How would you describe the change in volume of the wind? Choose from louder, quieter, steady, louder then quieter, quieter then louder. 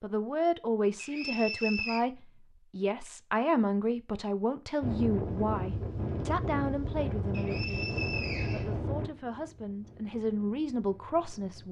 quieter.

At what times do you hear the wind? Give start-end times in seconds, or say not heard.
4.8-11.6.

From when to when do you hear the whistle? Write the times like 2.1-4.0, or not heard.
0.9-2.0, 7.3-8.7.